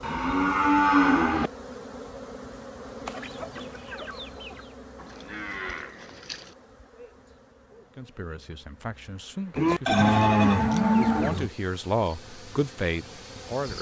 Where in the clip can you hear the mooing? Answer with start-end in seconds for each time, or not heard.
0.0-1.5, 5.0-6.5, 9.6-11.5.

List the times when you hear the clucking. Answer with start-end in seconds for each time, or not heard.
3.0-4.7, 9.8-11.4.